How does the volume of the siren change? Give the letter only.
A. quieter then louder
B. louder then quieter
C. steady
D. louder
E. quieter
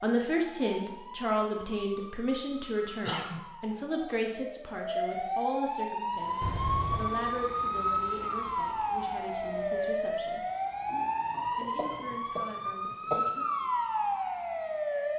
D.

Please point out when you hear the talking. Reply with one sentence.
You can hear the talking from 0.0 to 10.4 s and from 11.6 to 13.7 s.